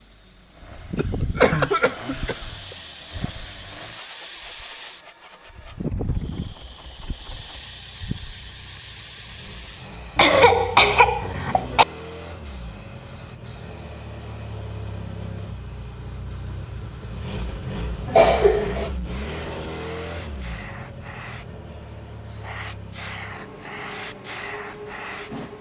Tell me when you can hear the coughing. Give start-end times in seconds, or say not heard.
0.9-2.4, 10.2-11.8, 18.1-18.9.